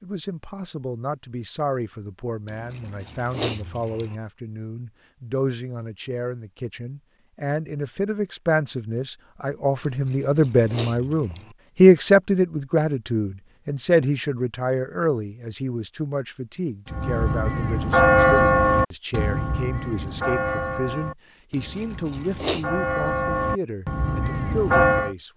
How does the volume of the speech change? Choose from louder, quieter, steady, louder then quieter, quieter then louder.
louder then quieter.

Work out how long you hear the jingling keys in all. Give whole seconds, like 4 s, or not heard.
5 s.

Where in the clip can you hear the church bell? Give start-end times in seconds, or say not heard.
16.9-25.1.